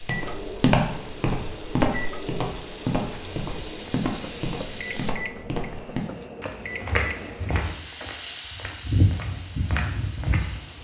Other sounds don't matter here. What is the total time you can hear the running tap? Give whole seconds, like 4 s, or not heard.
8 s.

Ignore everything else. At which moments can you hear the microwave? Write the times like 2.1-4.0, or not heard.
0.0-7.6.